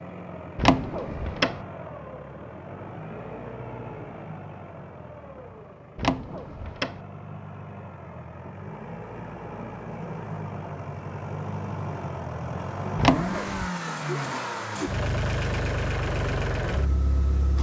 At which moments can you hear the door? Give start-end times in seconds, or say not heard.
0.6-1.6, 6.0-7.0, 12.9-13.7.